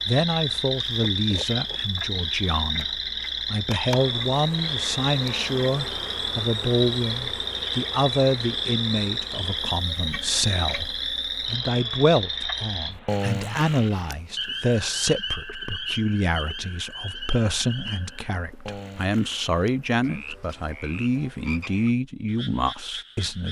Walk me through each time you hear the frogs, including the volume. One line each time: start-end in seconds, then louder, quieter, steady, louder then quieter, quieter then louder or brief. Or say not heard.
0.0-23.4 quieter.